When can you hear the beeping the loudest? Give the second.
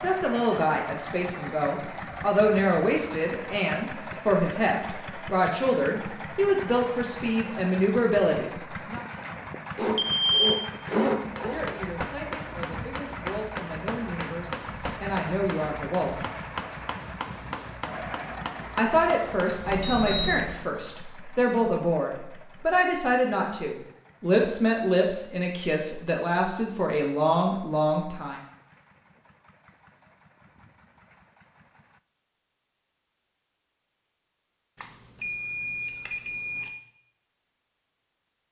10 s.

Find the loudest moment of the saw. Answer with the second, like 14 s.
11 s.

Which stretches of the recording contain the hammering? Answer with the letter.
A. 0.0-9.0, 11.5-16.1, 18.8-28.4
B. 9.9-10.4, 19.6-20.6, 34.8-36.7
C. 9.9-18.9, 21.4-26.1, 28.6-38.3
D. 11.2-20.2
D.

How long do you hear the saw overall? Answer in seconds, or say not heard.
2 s.